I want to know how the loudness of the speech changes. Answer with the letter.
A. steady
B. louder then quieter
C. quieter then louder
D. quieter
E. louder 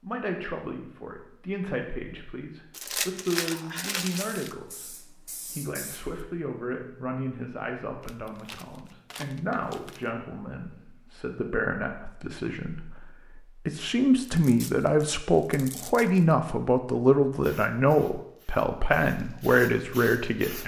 E.